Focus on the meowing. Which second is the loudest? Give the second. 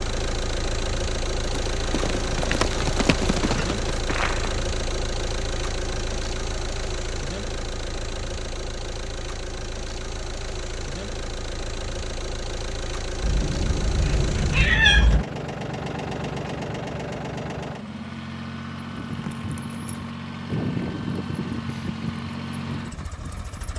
15 s.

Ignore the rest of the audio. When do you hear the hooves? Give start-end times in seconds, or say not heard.
1.4-4.6, 18.8-23.7.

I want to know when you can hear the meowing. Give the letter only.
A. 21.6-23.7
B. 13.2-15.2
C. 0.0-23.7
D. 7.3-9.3
B.